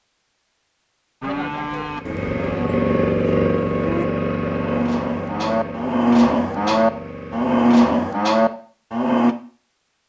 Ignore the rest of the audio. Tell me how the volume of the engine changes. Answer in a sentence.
The volume of the engine goes down.